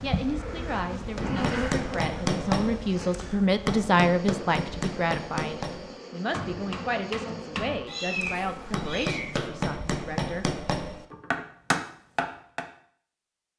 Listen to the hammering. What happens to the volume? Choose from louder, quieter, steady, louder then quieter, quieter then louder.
quieter then louder.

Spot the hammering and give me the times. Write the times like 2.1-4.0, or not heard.
1.1-12.7.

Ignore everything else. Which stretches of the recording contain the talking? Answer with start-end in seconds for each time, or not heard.
0.0-10.4.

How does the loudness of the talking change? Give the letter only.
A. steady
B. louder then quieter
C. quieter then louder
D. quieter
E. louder
B.